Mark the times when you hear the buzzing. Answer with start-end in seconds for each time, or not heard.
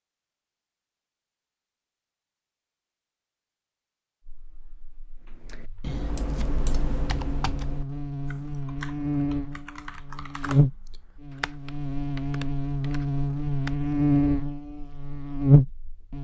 4.2-16.1.